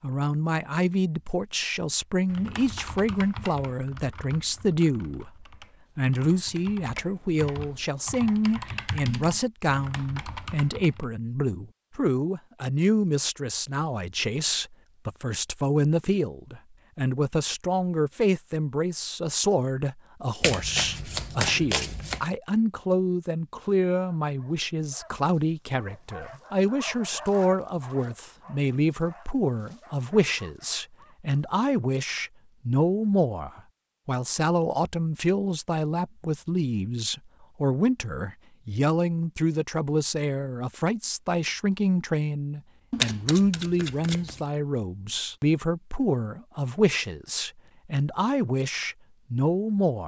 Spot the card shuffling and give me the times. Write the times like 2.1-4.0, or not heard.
20.4-22.2, 42.9-44.4.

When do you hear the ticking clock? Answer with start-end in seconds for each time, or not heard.
not heard.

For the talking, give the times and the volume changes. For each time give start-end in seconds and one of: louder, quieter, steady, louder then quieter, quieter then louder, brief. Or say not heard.
0.0-50.0 steady.